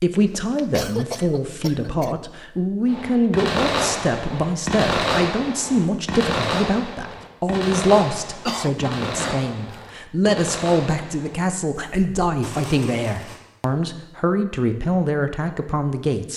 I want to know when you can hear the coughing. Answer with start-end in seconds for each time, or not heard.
0.1-2.1, 8.4-9.8.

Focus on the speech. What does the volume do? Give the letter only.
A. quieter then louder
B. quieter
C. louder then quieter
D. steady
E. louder
D.